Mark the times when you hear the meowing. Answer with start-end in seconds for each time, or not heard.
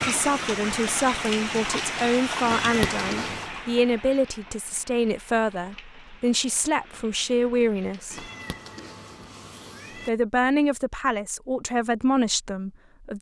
2.4-3.5, 8.1-10.1.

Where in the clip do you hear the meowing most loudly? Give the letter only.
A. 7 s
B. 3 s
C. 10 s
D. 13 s
B.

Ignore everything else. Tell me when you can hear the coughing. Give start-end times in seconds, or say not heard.
not heard.